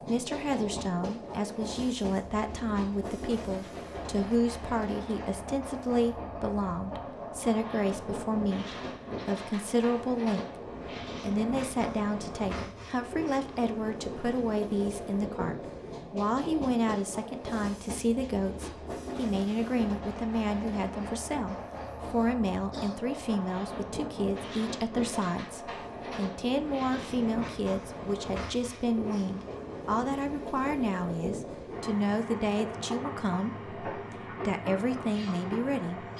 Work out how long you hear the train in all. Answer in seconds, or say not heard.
36 s.